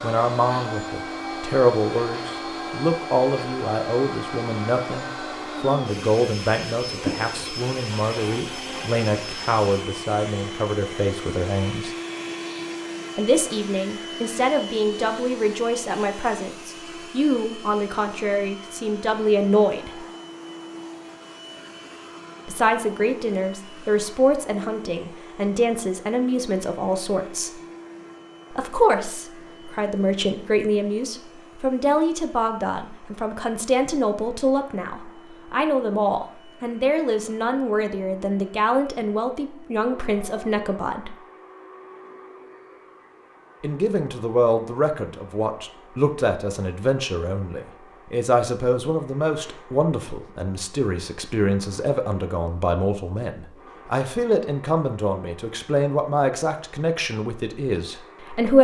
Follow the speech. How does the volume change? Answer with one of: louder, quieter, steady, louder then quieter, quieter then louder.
steady.